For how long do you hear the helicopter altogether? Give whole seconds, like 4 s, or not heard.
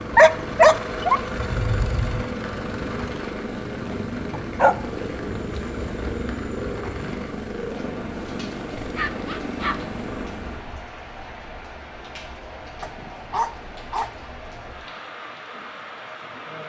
11 s.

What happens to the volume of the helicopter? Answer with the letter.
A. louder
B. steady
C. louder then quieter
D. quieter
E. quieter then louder
B.